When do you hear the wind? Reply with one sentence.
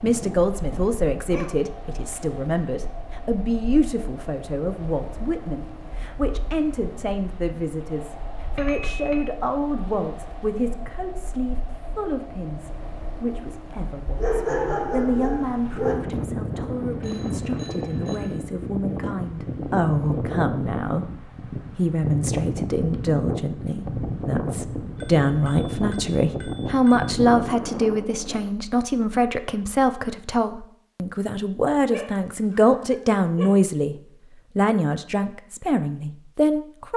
The wind can be heard from 0.0 to 28.5 s.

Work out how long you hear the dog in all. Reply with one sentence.
The dog can be heard for 5 seconds in total.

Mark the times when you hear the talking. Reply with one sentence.
The talking can be heard from 0.0 to 34.0 s and from 34.5 to 36.9 s.